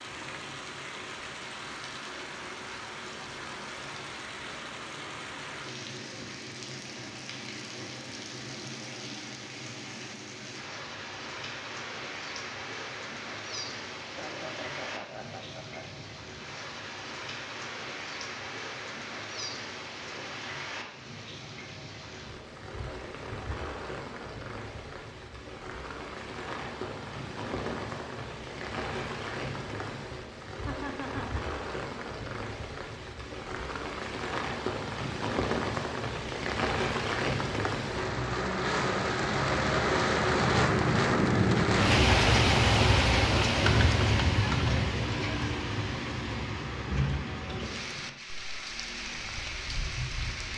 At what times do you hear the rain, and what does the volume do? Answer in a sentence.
The rain can be heard from 0.0 to 50.5 s, getting louder.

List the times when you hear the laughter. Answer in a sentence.
You can hear the laughter from 14.1 to 15.9 s and from 30.6 to 31.3 s.